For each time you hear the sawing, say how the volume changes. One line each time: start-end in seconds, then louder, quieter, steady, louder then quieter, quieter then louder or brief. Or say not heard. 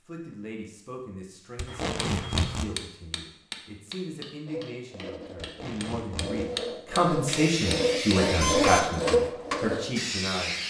4.5-9.9 louder.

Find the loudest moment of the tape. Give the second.
2 s.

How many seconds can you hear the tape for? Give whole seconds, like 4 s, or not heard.
2 s.